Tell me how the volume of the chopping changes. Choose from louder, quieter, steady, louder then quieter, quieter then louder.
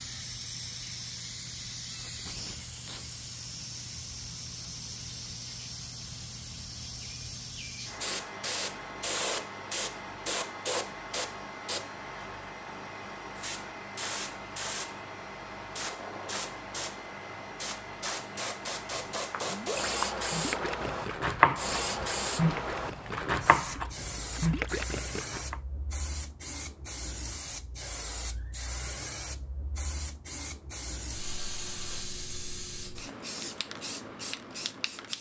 louder then quieter.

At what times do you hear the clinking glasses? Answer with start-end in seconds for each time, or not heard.
not heard.